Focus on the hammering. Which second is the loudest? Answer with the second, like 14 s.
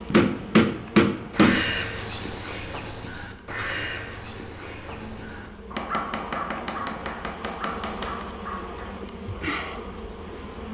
1 s.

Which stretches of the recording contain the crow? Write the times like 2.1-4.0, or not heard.
1.3-9.9.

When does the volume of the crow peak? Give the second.
2 s.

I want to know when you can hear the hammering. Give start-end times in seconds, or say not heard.
0.1-1.6, 5.8-8.2.